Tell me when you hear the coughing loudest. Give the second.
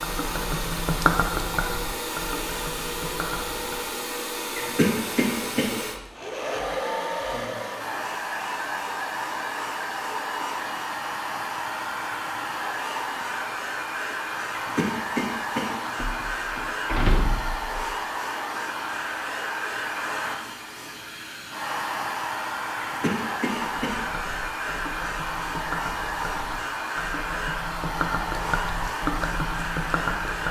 5 s.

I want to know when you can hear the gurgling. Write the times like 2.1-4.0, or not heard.
0.0-3.9, 23.6-30.4.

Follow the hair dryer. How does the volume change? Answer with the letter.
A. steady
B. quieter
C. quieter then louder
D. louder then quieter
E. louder
A.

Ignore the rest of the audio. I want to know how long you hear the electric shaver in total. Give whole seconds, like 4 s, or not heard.
not heard.